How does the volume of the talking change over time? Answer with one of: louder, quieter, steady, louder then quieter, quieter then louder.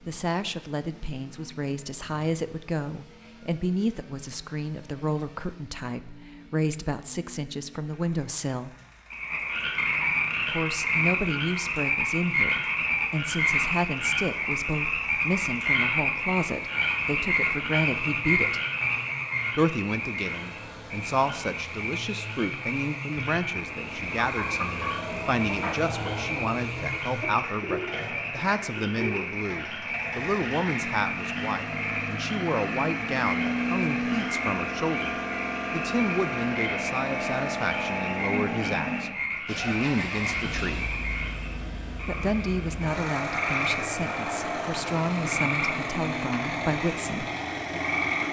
steady.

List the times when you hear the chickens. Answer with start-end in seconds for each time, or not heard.
23.1-29.3.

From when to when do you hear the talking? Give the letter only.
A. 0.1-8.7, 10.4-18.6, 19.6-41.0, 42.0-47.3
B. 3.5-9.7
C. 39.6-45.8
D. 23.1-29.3
A.